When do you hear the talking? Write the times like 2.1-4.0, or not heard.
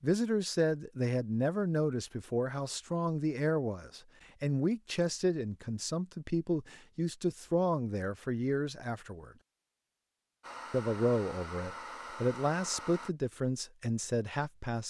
0.0-9.3, 10.7-14.8.